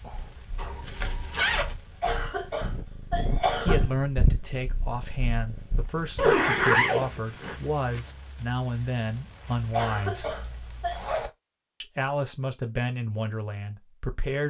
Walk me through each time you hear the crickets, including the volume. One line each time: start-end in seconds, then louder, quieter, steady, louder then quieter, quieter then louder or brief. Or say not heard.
0.0-11.3 quieter then louder.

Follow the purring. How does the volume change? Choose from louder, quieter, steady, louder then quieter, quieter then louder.
louder then quieter.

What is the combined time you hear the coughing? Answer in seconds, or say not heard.
3 s.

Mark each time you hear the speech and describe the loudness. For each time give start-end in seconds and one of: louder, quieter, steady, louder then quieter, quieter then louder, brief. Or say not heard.
3.6-10.3 steady
11.8-14.4 brief.